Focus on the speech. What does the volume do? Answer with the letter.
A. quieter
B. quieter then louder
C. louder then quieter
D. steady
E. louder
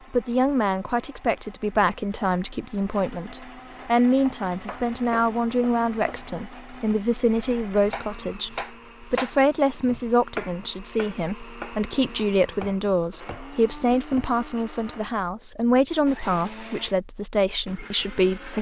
D.